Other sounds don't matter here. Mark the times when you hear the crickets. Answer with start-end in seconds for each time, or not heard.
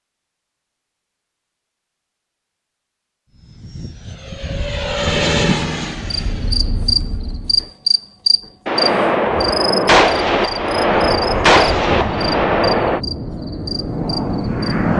6.0-14.9.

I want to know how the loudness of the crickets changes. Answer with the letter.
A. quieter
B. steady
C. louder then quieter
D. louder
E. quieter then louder
A.